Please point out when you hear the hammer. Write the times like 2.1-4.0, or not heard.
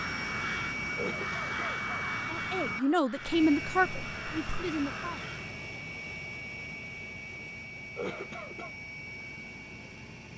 not heard.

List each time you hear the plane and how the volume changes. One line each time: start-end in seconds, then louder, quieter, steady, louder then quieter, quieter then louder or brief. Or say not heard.
0.0-10.3 quieter.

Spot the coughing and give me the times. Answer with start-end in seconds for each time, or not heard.
0.9-1.8, 8.0-8.7.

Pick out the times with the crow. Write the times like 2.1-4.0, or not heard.
0.0-5.5.